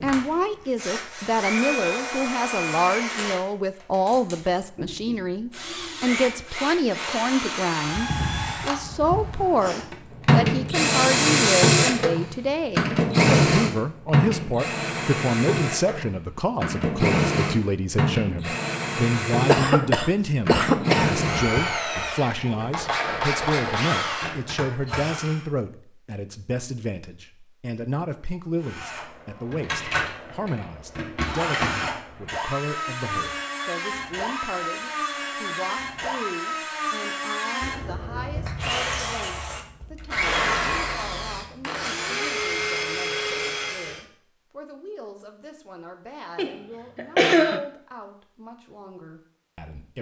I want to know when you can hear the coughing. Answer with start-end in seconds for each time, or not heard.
19.4-21.6, 46.4-47.6.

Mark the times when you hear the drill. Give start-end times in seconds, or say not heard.
0.0-25.4, 28.6-44.0.